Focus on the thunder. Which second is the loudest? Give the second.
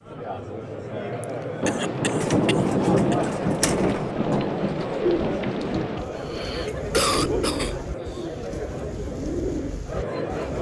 3 s.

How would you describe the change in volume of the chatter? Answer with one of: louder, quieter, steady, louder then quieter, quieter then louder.
steady.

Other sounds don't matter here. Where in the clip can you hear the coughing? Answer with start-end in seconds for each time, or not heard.
1.2-3.1, 6.2-7.8.